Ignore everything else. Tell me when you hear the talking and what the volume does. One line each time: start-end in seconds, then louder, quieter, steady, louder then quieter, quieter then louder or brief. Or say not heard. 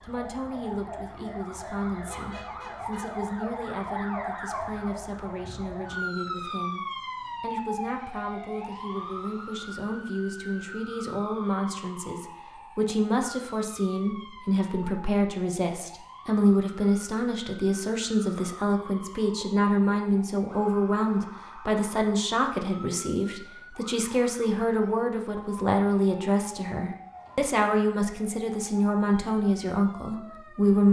0.0-30.8 louder.